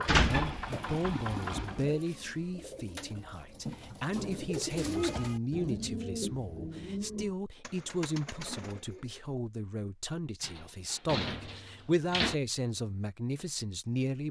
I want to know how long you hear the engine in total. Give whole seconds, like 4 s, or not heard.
2 s.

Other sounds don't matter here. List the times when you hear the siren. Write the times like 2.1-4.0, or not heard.
not heard.